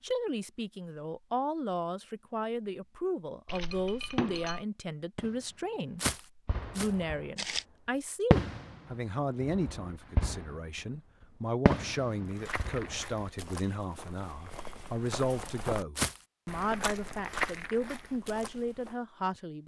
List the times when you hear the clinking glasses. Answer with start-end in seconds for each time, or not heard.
3.5-4.7.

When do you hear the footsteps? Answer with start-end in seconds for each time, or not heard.
6.0-7.7, 12.2-18.9.